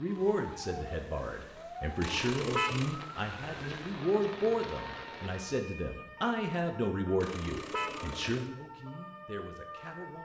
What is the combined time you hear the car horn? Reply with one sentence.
You can hear the car horn for 2 seconds altogether.